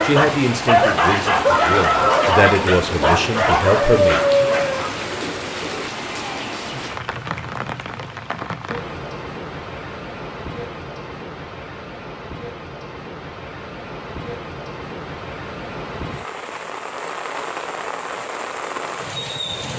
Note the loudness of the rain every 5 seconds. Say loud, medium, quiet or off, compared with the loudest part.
loud, loud, medium, loud.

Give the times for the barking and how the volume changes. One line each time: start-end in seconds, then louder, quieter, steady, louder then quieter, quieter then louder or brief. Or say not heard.
0.0-5.0 steady.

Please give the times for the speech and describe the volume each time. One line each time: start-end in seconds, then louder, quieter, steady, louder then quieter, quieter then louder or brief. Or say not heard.
0.0-4.2 quieter then louder.